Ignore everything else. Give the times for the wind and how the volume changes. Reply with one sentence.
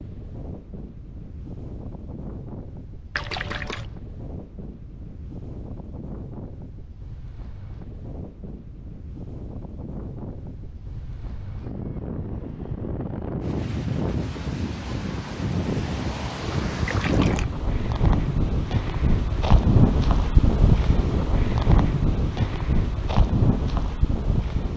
You can hear the wind from 0.0 to 24.7 s, getting louder.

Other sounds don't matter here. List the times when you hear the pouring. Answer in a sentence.
You can hear the pouring from 3.1 to 3.9 s and from 16.4 to 17.5 s.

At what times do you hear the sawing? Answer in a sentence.
You can't hear the sawing here.